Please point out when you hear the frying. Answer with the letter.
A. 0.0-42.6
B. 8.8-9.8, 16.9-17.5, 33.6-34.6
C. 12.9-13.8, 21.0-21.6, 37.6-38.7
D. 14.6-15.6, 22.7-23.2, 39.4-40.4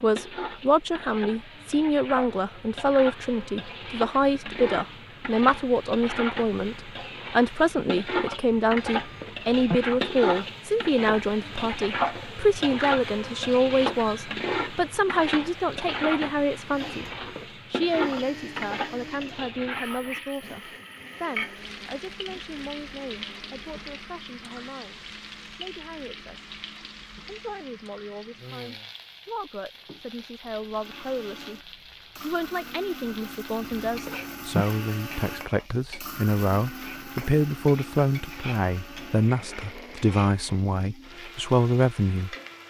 A.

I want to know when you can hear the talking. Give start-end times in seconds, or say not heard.
0.0-17.1, 17.7-26.6, 27.2-42.4.